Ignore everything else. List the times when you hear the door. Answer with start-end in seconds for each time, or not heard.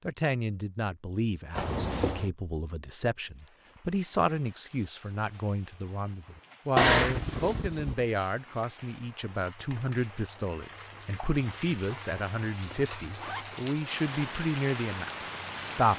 not heard.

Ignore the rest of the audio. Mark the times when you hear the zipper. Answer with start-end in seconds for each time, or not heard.
1.6-2.3, 6.8-8.1, 11.8-13.7.